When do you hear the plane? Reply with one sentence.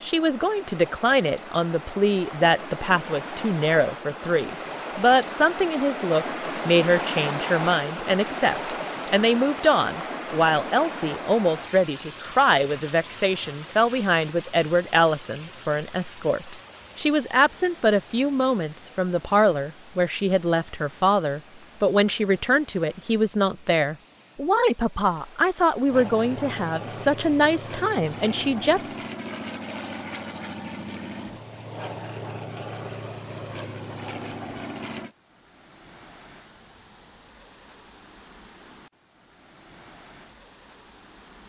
You can hear the plane from 25.9 to 35.1 s.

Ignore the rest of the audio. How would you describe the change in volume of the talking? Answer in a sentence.
The loudness of the talking stays about the same.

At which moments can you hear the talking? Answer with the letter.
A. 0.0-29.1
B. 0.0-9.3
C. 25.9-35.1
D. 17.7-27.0
A.